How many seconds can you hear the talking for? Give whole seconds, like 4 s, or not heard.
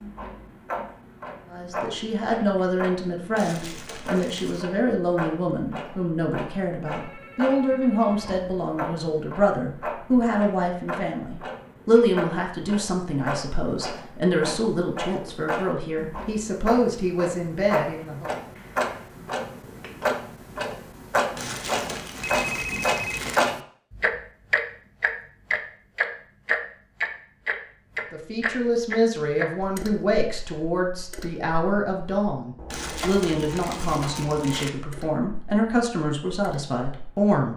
26 s.